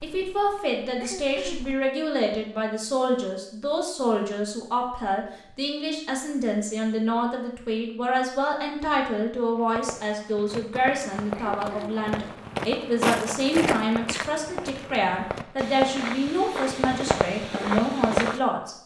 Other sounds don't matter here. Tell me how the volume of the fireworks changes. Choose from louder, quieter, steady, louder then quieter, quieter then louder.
louder.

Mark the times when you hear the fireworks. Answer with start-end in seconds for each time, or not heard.
9.6-18.4.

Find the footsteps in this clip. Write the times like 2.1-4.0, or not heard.
0.0-1.8, 10.5-18.4.